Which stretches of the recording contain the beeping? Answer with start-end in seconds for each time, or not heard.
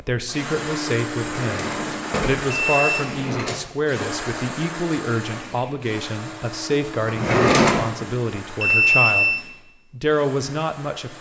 2.5-3.1, 8.6-9.4.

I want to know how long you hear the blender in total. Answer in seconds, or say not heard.
11 s.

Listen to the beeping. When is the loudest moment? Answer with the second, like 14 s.
9 s.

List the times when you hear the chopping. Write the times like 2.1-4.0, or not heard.
not heard.